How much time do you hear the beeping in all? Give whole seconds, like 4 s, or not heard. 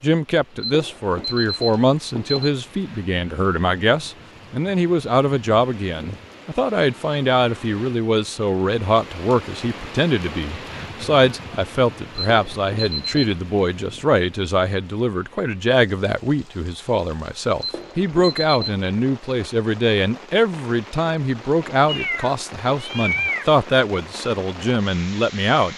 4 s.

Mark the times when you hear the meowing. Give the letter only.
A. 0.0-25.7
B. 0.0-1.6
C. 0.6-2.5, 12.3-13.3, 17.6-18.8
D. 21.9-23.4
D.